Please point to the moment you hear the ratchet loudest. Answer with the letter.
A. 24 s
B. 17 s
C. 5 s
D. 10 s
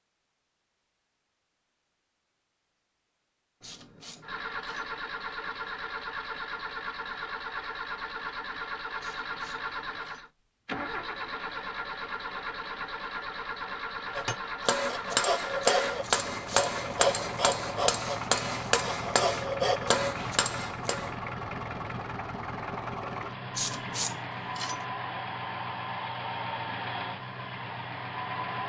A.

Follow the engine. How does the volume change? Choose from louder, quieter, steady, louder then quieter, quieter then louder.
steady.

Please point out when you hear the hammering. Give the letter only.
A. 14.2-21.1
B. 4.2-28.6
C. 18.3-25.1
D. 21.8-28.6
A.